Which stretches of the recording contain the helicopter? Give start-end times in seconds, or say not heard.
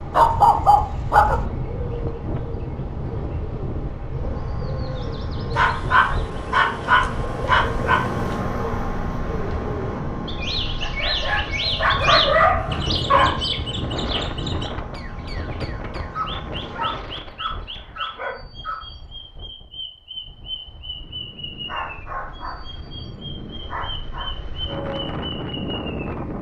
4.2-17.1.